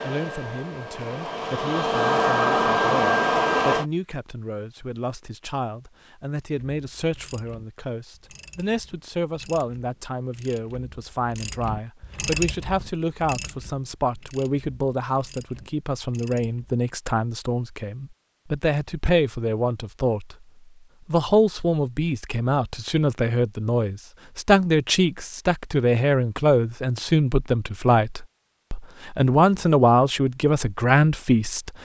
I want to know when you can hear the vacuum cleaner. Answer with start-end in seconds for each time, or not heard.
0.0-3.9.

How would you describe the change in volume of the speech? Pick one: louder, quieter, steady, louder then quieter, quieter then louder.
louder.